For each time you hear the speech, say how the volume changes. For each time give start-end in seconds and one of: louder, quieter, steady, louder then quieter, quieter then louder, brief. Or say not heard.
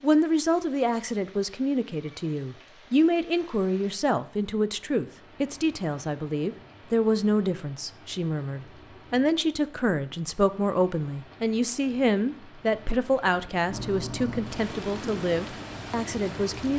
0.0-16.7 steady.